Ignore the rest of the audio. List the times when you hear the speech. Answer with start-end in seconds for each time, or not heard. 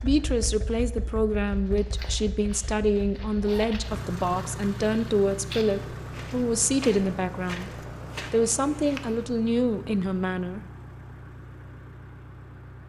0.0-7.7, 8.3-10.6.